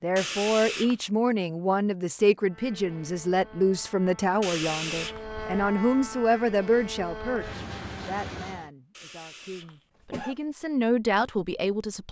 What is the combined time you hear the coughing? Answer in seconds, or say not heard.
3 s.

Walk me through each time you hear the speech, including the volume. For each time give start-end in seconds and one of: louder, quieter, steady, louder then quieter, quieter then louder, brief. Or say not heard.
0.0-12.0 quieter then louder.